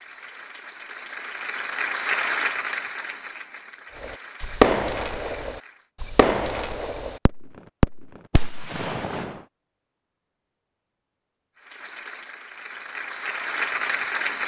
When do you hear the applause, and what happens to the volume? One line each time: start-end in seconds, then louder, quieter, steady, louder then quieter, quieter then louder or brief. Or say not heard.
0.0-5.8 louder then quieter
11.6-14.4 brief.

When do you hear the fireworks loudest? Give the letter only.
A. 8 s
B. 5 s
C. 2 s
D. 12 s
B.